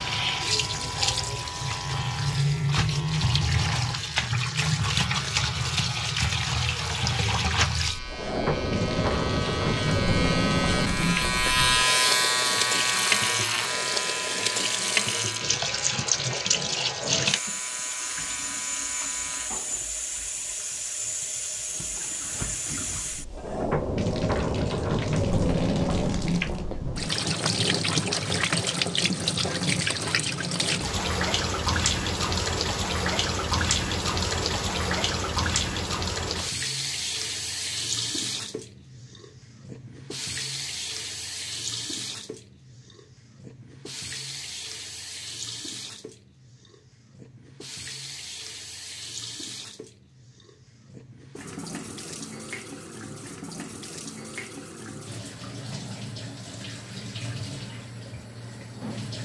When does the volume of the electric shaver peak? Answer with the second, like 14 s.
12 s.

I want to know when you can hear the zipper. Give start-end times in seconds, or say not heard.
not heard.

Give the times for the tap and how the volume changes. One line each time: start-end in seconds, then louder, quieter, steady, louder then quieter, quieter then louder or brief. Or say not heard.
0.0-59.1 quieter.